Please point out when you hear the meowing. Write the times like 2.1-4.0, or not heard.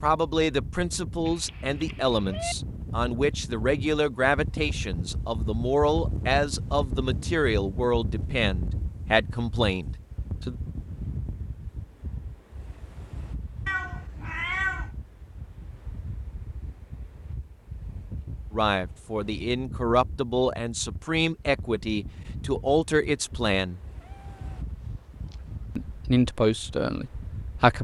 1.2-2.5, 13.7-14.9, 24.0-25.8.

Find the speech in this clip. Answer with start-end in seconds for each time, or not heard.
0.0-10.6, 18.5-23.8, 25.8-27.7.